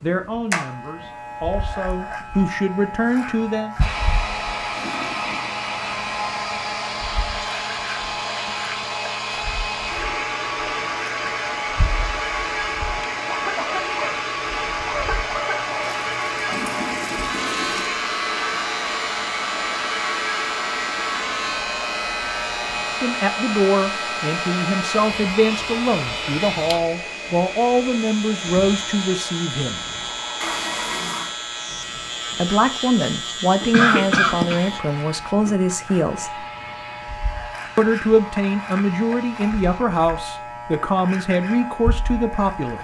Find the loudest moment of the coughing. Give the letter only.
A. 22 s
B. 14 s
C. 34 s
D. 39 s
C.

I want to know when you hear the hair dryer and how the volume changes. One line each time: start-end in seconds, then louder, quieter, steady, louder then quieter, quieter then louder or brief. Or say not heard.
3.8-39.8 quieter.